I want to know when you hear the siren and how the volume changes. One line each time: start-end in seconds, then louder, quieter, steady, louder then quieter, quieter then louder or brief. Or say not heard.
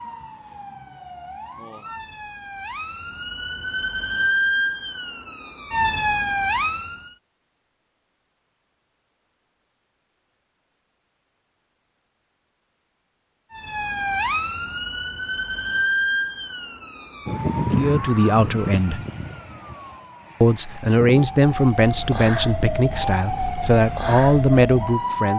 0.0-7.2 louder
13.5-25.3 quieter then louder.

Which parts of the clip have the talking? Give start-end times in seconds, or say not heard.
17.7-19.0, 20.4-25.3.